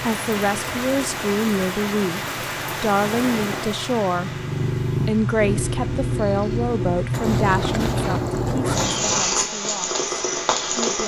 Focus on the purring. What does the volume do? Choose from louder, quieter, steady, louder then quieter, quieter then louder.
louder.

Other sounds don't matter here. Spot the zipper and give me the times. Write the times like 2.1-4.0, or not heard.
3.0-3.8, 7.1-9.3.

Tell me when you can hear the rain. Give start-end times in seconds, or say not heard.
0.0-7.3.